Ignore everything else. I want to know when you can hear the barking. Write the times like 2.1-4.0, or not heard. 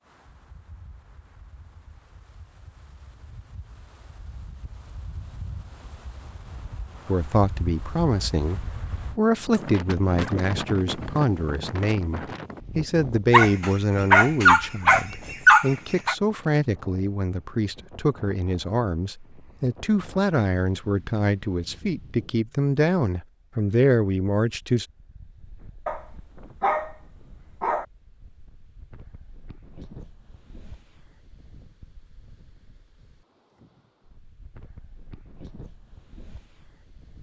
13.3-16.1, 25.9-27.9.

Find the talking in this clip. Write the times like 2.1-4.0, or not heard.
7.0-24.9.